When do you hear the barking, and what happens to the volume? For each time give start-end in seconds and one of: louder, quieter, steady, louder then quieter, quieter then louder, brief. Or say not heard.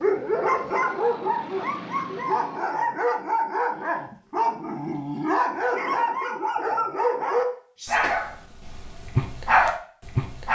0.0-10.5 steady.